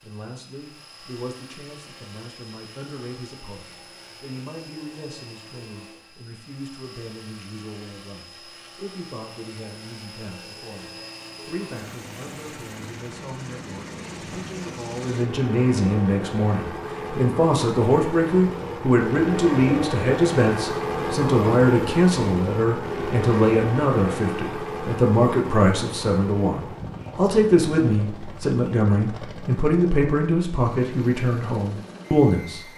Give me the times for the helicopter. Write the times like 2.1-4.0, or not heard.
0.0-32.7.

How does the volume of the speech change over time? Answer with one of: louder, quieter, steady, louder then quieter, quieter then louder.
louder.